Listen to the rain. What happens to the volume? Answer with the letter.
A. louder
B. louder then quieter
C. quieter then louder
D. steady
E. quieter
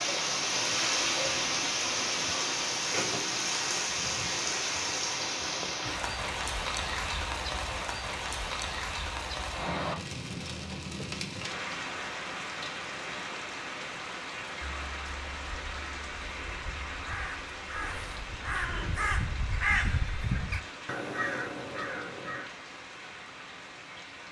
E.